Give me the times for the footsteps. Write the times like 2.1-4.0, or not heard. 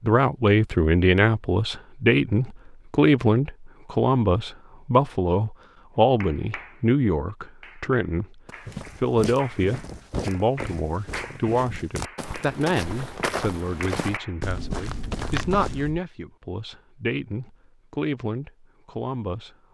8.4-16.0.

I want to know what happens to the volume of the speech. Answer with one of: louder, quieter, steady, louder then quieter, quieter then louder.
quieter.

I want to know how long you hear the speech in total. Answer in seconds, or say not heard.
19 s.